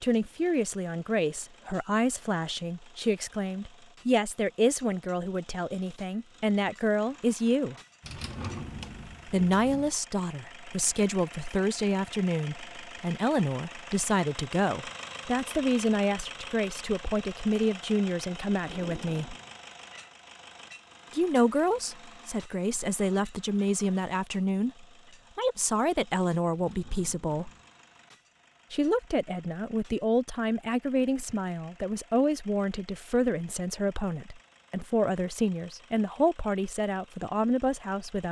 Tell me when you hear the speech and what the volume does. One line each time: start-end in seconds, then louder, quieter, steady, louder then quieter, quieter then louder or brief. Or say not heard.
0.0-7.8 steady
9.2-19.4 steady
21.1-27.5 steady
28.7-38.2 steady.